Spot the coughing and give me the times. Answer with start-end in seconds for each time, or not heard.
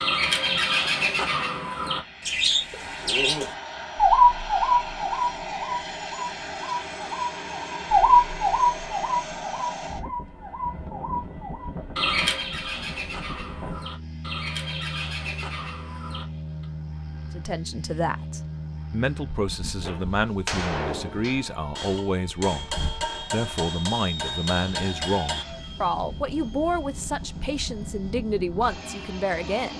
not heard.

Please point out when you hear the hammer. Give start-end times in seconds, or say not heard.
19.8-25.4.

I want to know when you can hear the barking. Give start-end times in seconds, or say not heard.
not heard.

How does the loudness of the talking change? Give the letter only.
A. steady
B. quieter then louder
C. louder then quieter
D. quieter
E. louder
A.